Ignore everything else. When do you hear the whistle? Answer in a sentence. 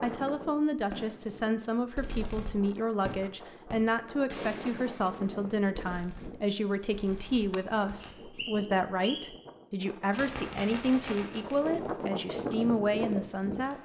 You can hear the whistle from 8.0 to 9.2 s.